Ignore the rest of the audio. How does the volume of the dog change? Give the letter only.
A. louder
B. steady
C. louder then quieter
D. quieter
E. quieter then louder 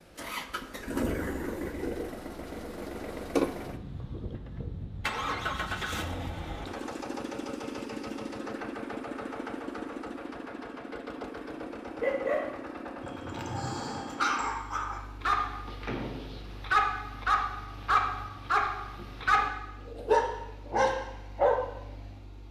A.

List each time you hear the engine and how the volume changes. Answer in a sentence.
The engine can be heard from 0.0 to 22.4 s, getting quieter.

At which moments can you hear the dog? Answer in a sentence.
You can hear the dog from 11.5 to 21.6 s.